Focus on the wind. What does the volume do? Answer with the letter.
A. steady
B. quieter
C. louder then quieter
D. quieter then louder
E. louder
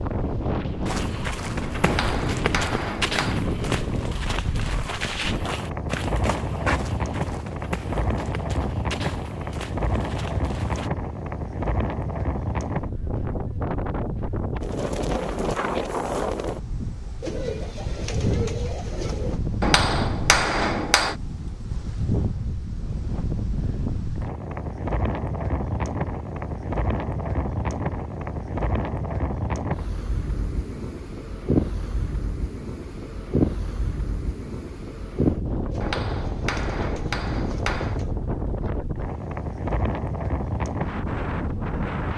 A.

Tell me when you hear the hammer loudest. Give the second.
20 s.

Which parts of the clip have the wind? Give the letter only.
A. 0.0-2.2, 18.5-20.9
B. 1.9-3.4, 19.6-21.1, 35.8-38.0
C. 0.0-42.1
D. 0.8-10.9
C.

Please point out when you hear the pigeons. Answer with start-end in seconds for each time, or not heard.
17.2-19.4, 35.7-38.1.